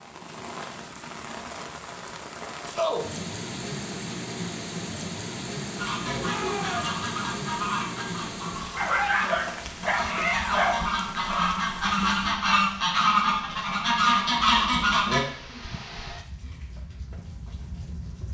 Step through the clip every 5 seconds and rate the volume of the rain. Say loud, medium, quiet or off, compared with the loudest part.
loud, loud, medium, medium.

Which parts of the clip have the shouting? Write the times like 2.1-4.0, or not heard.
6.2-7.0, 10.1-10.8.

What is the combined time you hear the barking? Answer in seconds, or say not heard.
3 s.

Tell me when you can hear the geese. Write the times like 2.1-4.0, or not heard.
5.8-15.2.